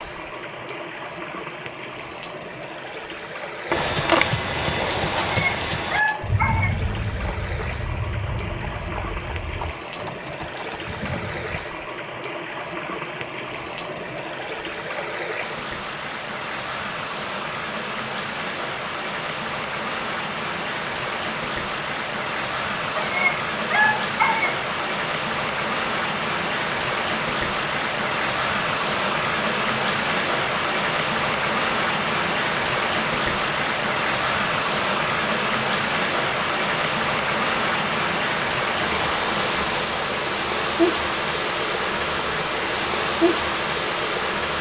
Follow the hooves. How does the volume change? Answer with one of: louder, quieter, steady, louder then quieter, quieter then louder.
quieter.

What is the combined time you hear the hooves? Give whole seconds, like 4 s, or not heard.
8 s.